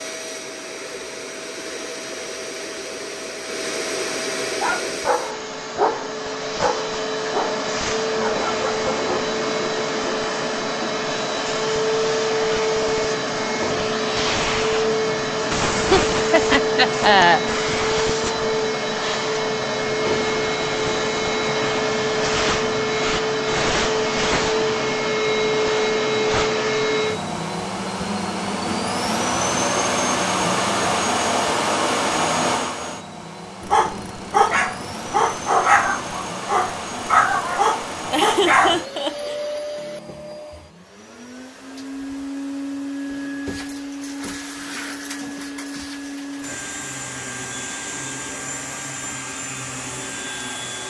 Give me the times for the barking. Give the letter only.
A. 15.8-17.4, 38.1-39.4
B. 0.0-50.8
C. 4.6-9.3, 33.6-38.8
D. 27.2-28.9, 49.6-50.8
C.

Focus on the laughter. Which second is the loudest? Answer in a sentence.
The volume of the laughter peaks at 17 seconds.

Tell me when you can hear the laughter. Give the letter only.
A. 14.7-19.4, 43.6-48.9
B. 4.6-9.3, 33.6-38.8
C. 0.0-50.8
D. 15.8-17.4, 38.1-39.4
D.